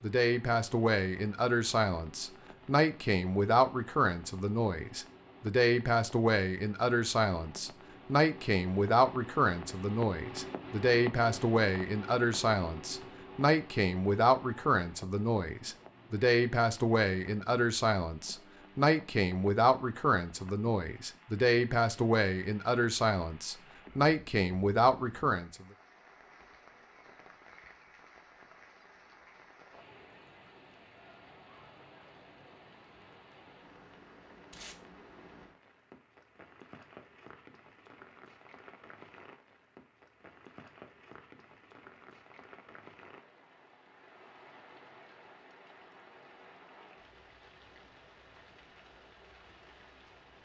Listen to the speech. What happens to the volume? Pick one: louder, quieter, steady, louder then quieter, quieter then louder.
steady.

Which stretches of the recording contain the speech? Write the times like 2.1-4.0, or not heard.
0.0-25.6.